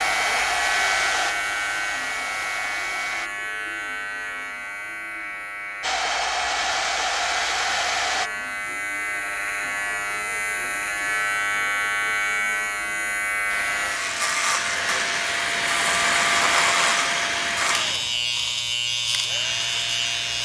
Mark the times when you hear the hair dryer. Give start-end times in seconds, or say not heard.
0.0-3.3, 5.8-8.3, 13.4-20.3.